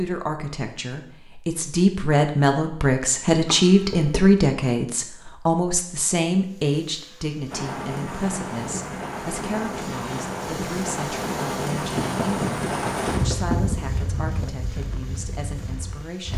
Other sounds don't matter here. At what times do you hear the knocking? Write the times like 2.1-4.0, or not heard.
3.5-4.2, 12.0-13.7.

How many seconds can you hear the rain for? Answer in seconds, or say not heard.
9 s.